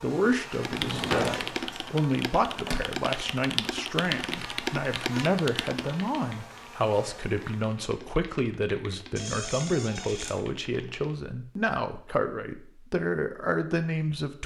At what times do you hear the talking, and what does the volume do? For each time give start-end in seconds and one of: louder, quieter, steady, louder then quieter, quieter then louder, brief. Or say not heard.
0.0-14.4 steady.